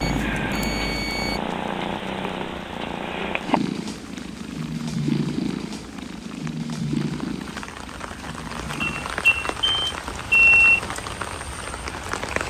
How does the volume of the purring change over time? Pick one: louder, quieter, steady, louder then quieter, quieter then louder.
quieter.